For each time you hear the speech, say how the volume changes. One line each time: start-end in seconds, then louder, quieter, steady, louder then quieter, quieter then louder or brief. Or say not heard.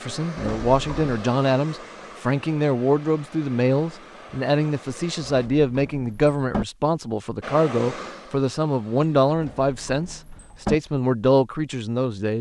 0.0-12.3 steady.